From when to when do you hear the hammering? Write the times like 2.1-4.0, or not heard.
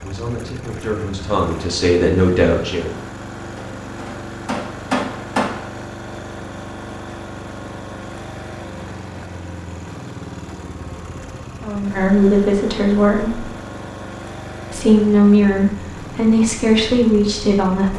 3.5-5.7.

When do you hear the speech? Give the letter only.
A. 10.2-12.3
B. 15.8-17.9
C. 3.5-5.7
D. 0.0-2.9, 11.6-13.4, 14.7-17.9
D.